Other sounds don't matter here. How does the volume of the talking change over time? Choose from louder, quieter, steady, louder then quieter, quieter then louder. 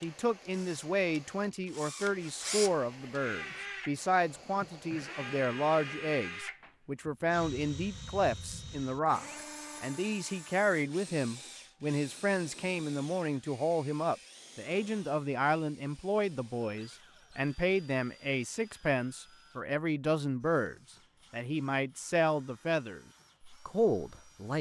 steady.